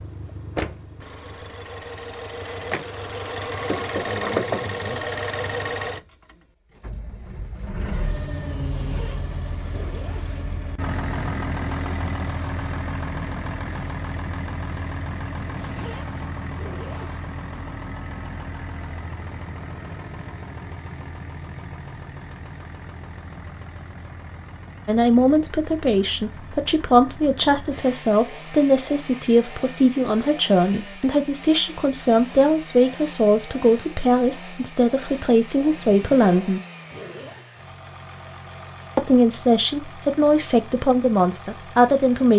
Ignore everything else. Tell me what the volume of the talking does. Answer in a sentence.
The volume of the talking stays about the same.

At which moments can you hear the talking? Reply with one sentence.
You can hear the talking from 24.9 to 36.6 s and from 39.0 to 42.3 s.